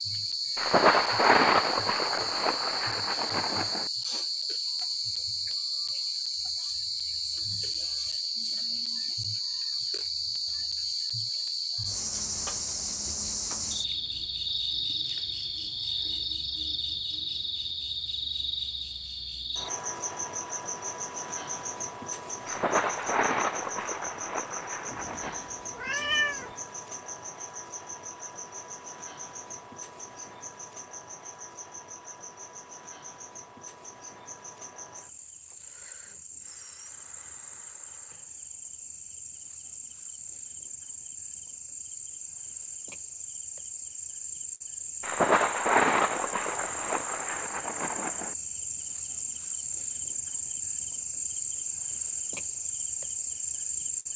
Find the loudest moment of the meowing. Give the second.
26 s.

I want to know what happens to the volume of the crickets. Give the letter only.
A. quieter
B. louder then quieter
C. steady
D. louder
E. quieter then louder
E.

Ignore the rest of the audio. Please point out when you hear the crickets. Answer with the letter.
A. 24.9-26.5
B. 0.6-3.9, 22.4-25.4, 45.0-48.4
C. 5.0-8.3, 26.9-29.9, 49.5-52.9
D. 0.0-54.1
D.